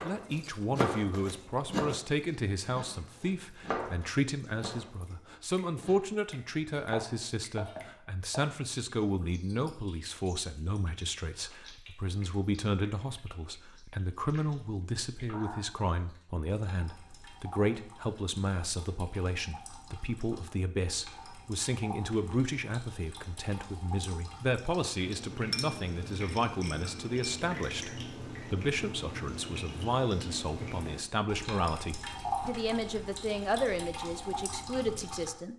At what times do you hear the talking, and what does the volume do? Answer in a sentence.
The talking can be heard from 0.0 to 35.5 s, at a steady volume.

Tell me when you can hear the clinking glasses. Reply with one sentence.
The clinking glasses can be heard from 25.5 to 27.4 s.